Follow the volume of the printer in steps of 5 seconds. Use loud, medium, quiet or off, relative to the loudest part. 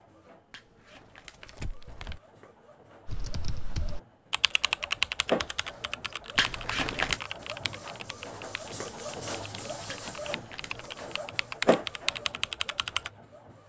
quiet, loud, loud.